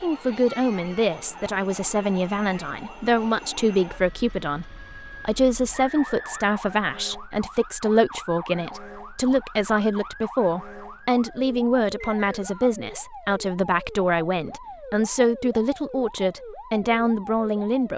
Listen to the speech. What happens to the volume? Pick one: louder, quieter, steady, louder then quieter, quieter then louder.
steady.